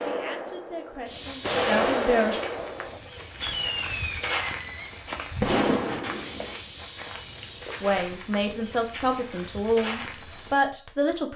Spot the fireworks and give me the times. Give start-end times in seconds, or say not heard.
0.0-6.5.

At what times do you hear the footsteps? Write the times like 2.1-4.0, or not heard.
1.1-10.6.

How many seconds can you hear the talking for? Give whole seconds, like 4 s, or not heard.
6 s.